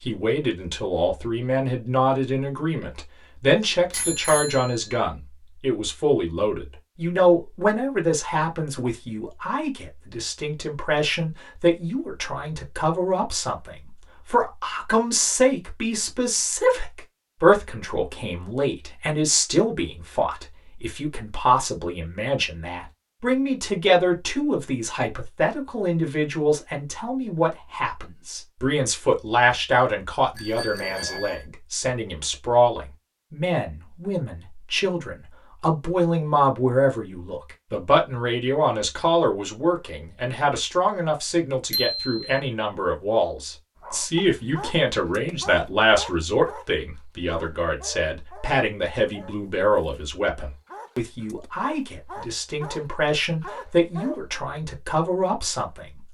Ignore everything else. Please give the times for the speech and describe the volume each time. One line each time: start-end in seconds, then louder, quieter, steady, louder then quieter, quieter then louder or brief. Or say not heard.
0.1-56.0 steady.